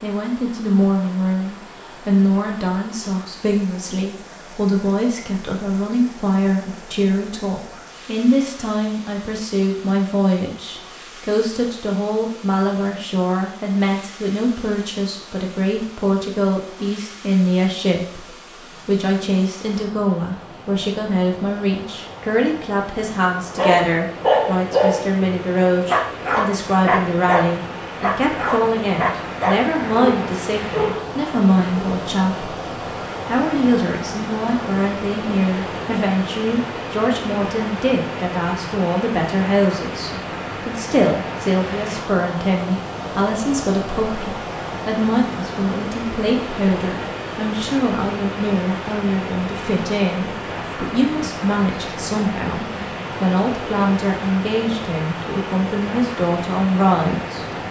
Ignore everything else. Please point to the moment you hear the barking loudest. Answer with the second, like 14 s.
24 s.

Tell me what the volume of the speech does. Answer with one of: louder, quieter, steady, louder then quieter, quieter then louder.
steady.